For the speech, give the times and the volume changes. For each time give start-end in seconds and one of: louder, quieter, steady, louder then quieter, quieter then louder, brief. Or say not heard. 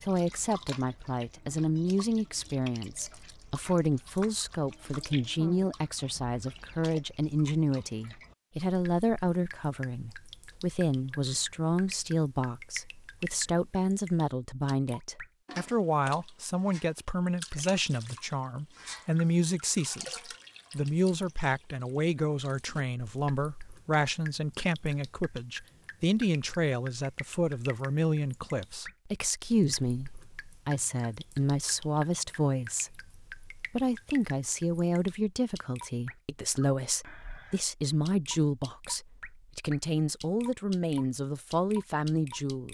0.0-42.6 steady.